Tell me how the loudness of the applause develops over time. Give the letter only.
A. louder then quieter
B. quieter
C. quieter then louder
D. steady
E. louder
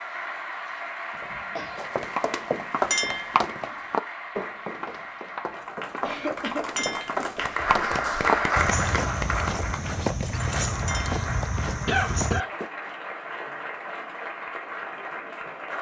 A.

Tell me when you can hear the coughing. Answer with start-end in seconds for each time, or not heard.
1.1-1.9, 6.0-7.3, 11.8-12.5.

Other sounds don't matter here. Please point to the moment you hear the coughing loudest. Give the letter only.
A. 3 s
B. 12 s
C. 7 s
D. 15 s
B.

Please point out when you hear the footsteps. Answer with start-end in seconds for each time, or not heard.
1.8-12.7.